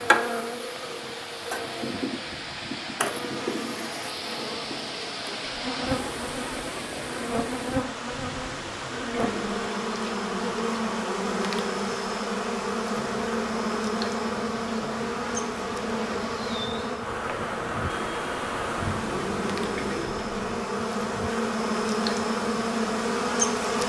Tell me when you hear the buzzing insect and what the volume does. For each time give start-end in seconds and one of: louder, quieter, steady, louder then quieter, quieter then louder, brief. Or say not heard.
0.0-23.8 louder.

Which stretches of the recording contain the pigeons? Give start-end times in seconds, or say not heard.
8.1-9.7, 18.8-20.6.